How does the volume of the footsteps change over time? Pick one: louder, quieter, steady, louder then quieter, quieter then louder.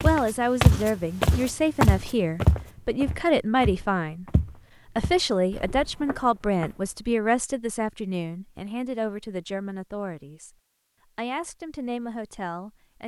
quieter.